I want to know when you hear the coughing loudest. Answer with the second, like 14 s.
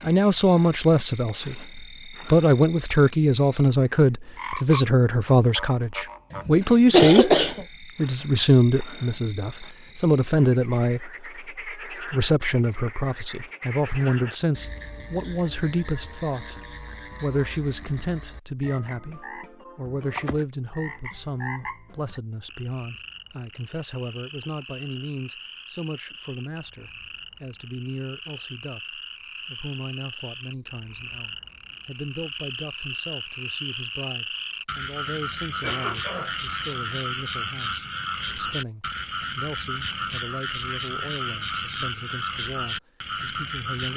7 s.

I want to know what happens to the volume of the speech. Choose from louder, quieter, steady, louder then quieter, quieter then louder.
quieter.